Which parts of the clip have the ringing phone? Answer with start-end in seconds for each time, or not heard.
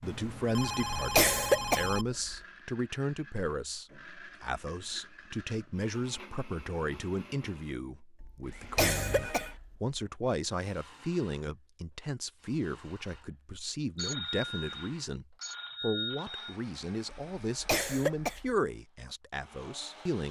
0.0-2.0, 8.8-9.6, 13.9-16.6.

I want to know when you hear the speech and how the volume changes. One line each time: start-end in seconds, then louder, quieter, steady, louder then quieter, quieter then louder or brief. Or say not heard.
0.0-20.2 steady.